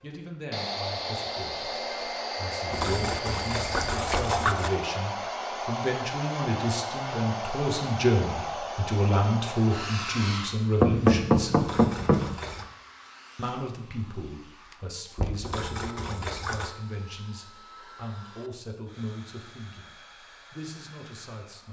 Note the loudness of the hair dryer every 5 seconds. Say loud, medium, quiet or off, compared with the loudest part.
loud, loud, medium, quiet, quiet.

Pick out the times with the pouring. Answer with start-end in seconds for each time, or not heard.
2.7-4.7, 11.6-12.7, 15.4-16.8.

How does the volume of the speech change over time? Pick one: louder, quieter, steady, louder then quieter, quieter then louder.
louder then quieter.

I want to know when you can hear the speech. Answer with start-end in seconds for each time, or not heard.
0.0-11.7, 13.3-21.6.